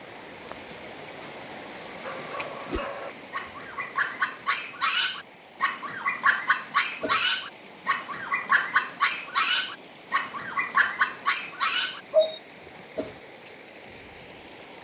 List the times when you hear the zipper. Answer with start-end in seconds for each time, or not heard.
not heard.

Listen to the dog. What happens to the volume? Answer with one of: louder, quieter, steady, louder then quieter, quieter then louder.
louder.